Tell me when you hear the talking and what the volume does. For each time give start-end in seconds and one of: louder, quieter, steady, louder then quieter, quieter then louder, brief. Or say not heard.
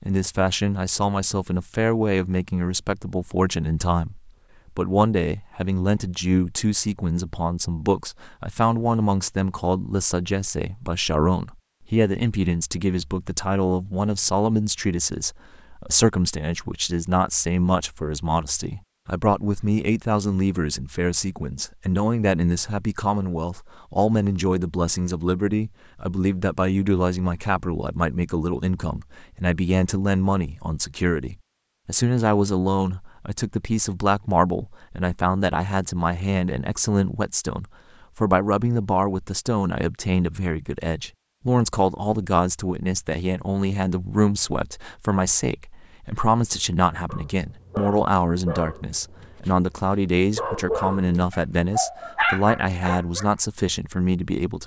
0.0-54.6 steady.